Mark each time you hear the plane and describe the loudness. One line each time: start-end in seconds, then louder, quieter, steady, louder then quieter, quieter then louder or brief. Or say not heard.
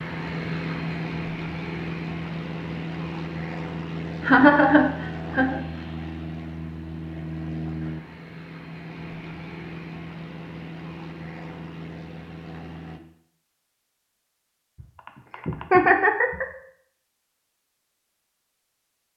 0.0-13.0 quieter.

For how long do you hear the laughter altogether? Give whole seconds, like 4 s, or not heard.
3 s.